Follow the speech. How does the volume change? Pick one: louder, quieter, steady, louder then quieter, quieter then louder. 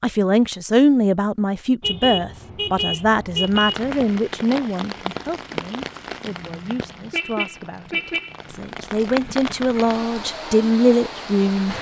quieter then louder.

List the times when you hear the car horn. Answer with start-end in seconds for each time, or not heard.
1.8-4.0, 6.3-8.6.